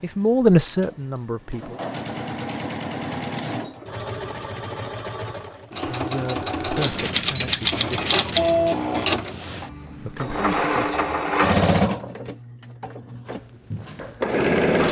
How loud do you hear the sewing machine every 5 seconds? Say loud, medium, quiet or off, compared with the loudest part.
medium, loud, loud.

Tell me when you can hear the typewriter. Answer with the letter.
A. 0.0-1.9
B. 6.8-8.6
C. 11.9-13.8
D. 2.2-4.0
B.